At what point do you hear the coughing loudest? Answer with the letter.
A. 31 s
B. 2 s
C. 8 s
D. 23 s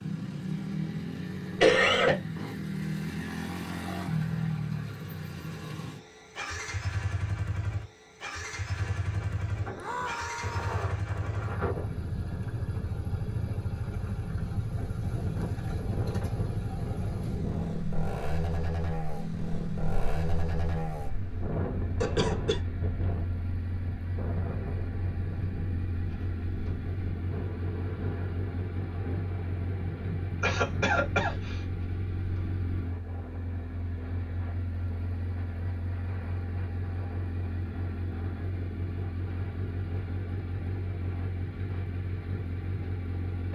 B.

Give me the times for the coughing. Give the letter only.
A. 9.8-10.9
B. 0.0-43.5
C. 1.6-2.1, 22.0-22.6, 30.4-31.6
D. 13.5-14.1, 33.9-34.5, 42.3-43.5
C.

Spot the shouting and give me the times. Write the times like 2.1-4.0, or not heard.
9.8-10.9.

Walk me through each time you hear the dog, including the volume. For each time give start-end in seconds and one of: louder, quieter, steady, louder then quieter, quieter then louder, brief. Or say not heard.
not heard.